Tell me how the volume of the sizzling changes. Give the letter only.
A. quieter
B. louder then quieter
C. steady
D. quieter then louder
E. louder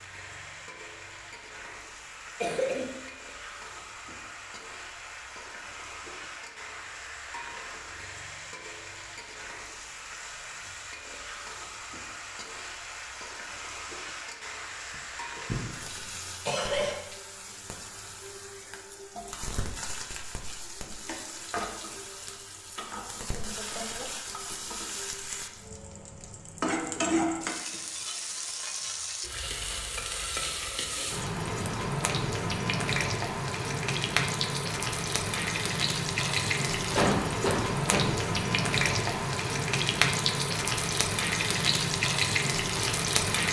E.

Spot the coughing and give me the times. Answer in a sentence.
The coughing can be heard from 2.4 to 2.9 s, from 14.9 to 15.7 s, from 16.4 to 16.9 s and from 37.0 to 38.1 s.